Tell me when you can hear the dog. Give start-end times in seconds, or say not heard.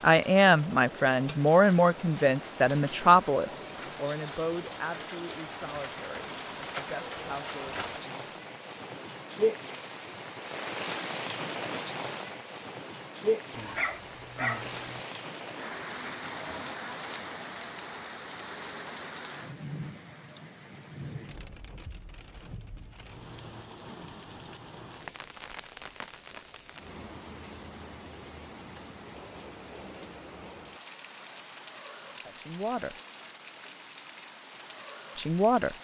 13.5-15.1.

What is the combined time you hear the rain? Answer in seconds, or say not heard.
36 s.